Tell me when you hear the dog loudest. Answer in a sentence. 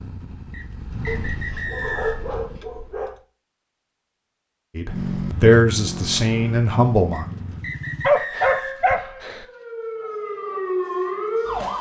The volume of the dog peaks at 8 seconds.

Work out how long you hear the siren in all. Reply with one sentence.
You can hear the siren for 3 seconds altogether.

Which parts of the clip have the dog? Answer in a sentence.
You can hear the dog from 1.1 to 3.2 s and from 8.0 to 9.4 s.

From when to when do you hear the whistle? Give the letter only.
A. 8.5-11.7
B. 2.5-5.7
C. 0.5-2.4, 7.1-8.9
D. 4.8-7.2
C.